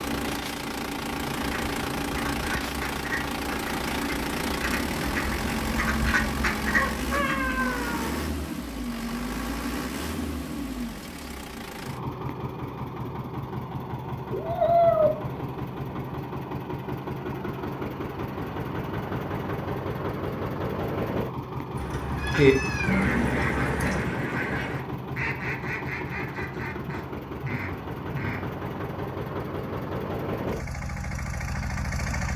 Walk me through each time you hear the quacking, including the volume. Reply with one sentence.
The quacking can be heard from 1.4 to 7.5 s, getting louder; and from 22.2 to 28.6 s, getting quieter.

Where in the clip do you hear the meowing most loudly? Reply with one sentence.
The volume of the meowing peaks at 15 seconds.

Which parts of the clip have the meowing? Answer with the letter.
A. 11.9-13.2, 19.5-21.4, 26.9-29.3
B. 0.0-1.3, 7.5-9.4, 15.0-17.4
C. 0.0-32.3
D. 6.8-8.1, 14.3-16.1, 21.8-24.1
D.